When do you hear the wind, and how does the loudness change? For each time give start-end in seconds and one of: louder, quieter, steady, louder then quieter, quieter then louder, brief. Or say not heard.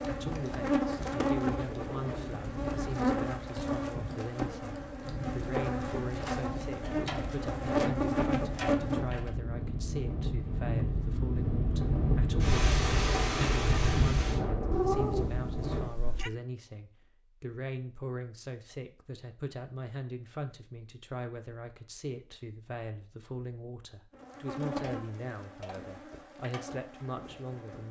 0.0-15.9 louder.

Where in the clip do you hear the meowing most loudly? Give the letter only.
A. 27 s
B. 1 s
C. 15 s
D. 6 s
C.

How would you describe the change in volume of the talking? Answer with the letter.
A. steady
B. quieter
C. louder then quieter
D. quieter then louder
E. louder
A.